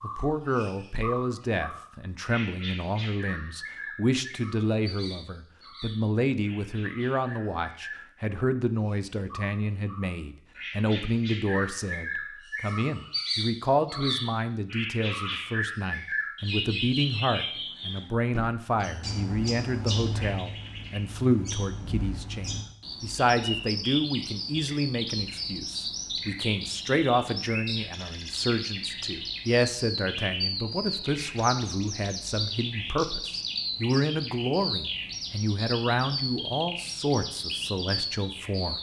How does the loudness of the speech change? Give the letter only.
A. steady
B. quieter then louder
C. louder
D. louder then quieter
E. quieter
A.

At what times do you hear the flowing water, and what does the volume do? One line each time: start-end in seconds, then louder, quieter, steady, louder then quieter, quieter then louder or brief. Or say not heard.
not heard.